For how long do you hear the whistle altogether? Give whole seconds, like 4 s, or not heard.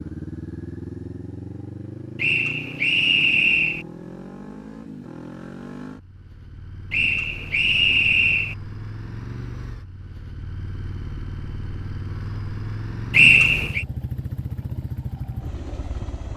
4 s.